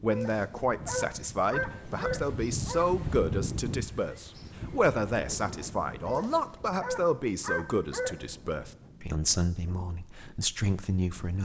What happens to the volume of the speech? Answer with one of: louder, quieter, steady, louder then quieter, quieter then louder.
steady.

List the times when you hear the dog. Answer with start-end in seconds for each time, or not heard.
0.1-2.9, 6.0-8.2.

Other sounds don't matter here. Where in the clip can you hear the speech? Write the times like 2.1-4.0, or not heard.
0.0-11.4.